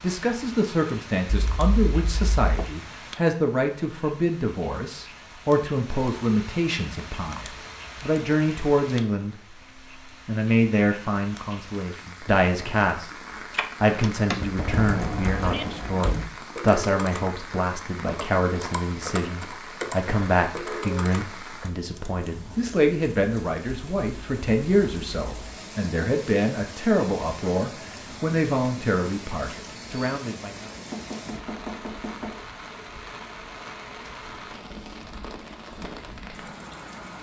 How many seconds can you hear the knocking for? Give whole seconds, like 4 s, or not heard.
4 s.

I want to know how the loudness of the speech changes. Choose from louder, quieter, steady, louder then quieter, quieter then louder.
steady.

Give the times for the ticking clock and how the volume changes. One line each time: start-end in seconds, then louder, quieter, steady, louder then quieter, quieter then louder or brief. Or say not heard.
not heard.